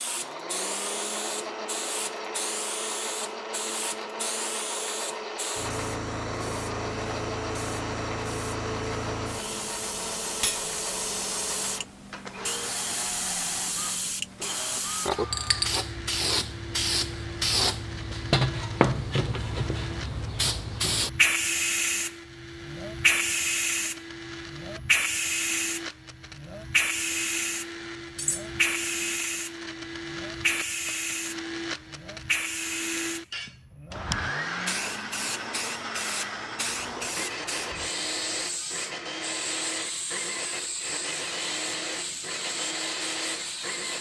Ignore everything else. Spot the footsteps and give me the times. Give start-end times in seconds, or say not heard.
not heard.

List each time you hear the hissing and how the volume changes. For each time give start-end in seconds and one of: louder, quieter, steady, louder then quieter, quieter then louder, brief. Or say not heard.
0.0-43.9 louder then quieter.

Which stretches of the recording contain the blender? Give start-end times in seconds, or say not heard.
0.0-43.9.